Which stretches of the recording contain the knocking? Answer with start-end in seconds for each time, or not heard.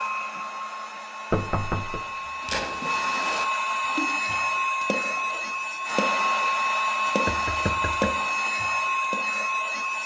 1.3-2.0, 7.2-8.2.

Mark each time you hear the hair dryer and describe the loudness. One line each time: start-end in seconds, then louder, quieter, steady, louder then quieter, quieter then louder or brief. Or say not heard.
0.0-10.0 louder.